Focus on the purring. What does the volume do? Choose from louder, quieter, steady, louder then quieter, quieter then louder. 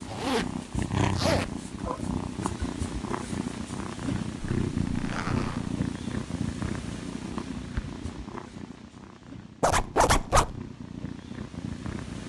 quieter.